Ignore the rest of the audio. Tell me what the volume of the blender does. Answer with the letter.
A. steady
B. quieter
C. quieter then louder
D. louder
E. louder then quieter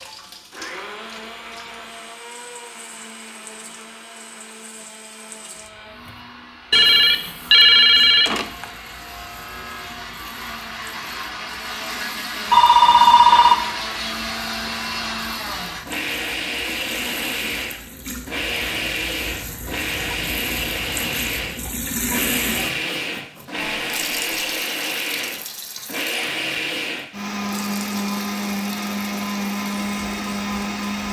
D.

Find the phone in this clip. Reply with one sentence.
You can hear the phone from 6.7 to 8.7 s, from 12.5 to 13.6 s and from 23.6 to 24.6 s.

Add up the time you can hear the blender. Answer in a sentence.
The blender can be heard for 31 seconds in total.